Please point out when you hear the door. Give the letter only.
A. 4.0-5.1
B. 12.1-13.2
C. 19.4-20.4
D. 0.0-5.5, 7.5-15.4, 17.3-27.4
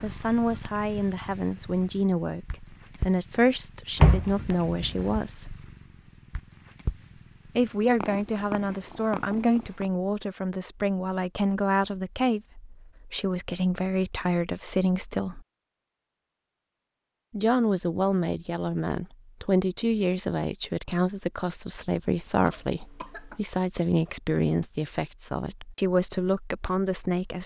A.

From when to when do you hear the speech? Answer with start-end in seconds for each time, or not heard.
0.0-5.5, 7.5-15.4, 17.3-27.4.